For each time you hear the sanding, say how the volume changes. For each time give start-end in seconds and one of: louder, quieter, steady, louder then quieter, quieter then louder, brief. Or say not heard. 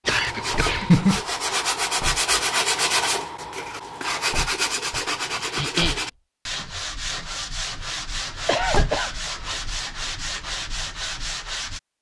0.1-11.8 quieter.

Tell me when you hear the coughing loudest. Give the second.
1 s.